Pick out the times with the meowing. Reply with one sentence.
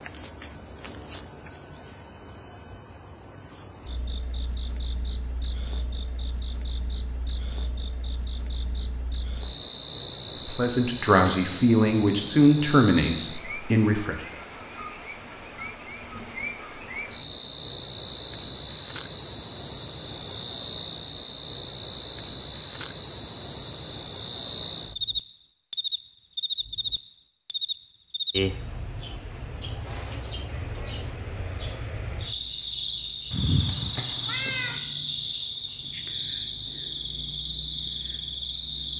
The meowing can be heard from 33.3 to 34.8 s.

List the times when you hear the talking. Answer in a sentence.
The talking can be heard from 10.3 to 14.2 s.